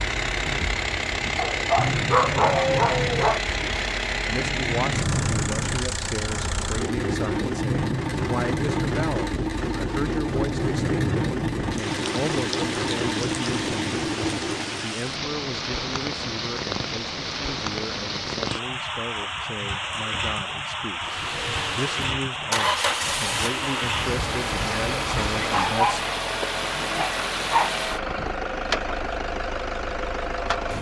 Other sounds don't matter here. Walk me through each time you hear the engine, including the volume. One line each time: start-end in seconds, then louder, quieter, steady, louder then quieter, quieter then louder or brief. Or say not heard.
0.0-14.9 steady
21.0-30.7 steady.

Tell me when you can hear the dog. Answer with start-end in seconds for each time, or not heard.
1.4-3.4, 25.4-27.8.